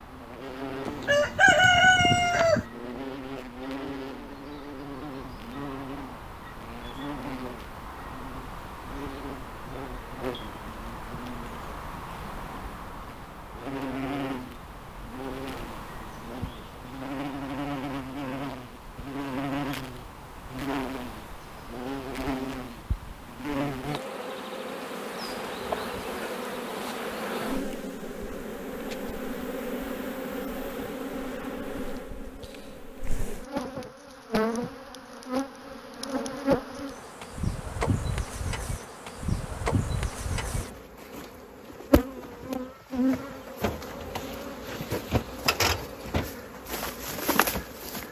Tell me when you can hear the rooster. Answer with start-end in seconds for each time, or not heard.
0.8-2.6.